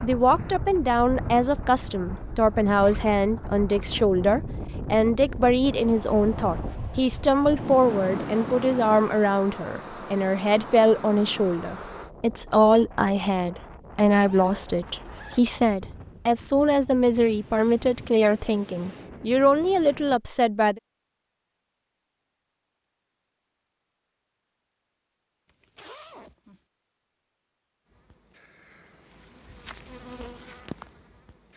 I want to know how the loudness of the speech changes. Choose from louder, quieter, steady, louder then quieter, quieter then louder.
steady.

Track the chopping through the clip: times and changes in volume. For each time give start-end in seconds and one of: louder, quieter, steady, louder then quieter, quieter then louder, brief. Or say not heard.
not heard.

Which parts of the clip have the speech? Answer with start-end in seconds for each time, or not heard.
0.0-20.8.